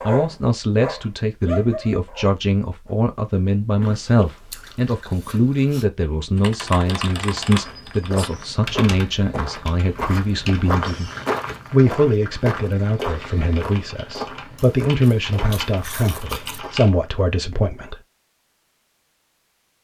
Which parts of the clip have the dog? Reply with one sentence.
You can hear the dog from 0.0 to 3.0 s.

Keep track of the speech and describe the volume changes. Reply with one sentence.
The volume of the speech stays about the same.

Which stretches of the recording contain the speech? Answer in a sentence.
You can hear the speech from 0.1 to 11.1 s and from 11.7 to 17.9 s.